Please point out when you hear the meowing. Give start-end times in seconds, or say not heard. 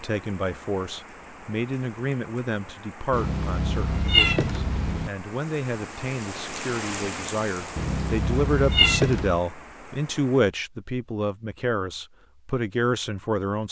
3.1-5.1, 7.8-9.4.